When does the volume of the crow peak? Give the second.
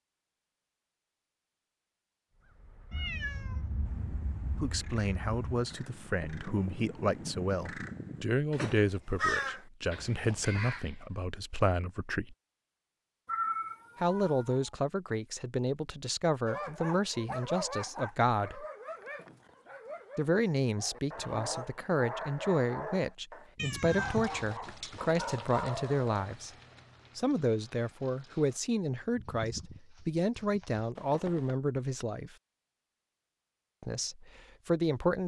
9 s.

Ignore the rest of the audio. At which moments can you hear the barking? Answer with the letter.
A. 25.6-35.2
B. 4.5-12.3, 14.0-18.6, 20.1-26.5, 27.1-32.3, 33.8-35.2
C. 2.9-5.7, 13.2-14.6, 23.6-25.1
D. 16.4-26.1
D.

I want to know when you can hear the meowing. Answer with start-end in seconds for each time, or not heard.
2.9-5.7, 13.2-14.6, 23.6-25.1.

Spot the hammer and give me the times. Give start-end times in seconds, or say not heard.
not heard.